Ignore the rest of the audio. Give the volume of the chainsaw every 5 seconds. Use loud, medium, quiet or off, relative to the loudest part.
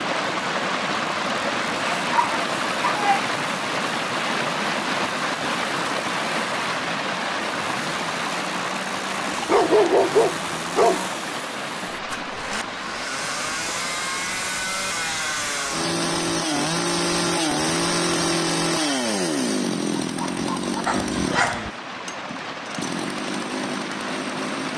quiet, quiet, medium, loud, medium.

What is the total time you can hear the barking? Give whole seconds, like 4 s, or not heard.
5 s.